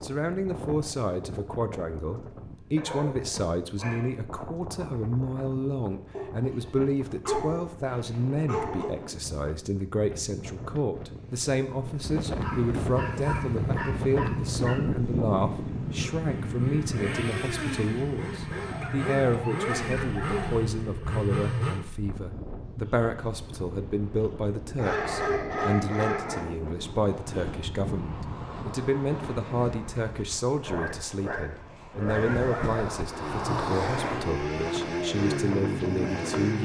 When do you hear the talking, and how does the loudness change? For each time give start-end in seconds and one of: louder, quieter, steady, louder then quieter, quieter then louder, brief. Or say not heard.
0.0-36.6 steady.